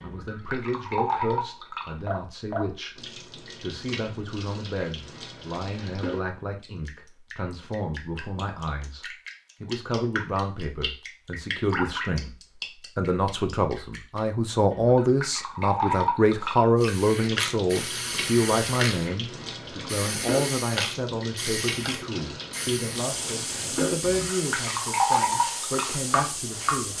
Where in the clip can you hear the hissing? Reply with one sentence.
You can hear the hissing from 16.8 to 26.9 s.